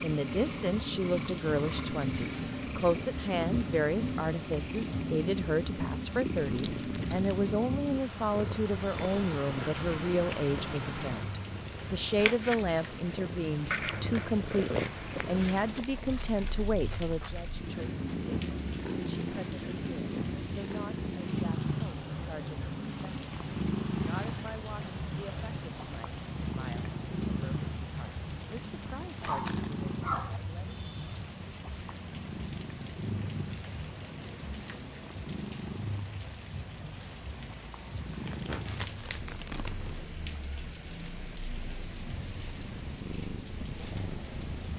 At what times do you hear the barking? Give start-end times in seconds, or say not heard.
29.2-30.4.